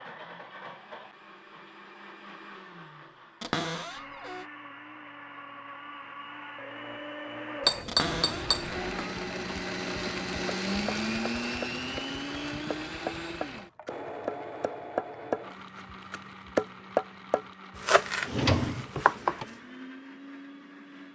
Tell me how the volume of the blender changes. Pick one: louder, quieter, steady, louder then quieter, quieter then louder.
louder then quieter.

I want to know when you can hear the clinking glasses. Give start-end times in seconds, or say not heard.
7.6-8.8.